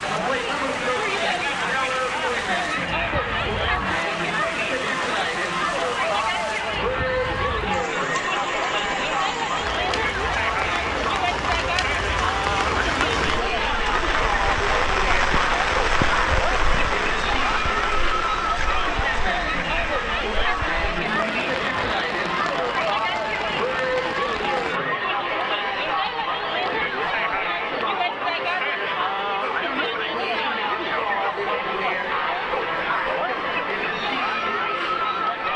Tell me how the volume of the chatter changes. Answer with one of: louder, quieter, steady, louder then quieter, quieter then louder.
steady.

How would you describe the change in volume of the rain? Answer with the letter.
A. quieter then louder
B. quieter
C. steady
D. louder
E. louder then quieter
E.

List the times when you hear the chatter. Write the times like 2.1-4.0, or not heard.
0.0-35.5.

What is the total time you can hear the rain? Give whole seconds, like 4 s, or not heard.
25 s.